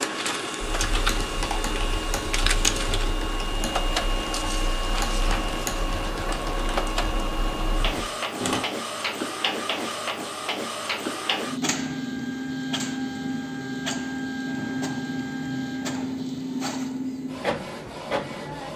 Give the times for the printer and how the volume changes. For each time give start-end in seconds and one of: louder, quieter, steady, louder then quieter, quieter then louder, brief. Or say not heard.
0.0-18.7 steady.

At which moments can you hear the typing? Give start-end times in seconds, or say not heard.
0.6-8.6.